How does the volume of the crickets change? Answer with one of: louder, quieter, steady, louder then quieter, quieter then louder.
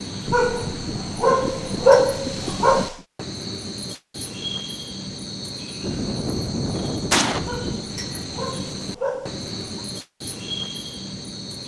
steady.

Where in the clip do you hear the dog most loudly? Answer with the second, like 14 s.
2 s.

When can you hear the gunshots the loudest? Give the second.
7 s.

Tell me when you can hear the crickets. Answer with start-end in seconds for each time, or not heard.
0.0-11.6.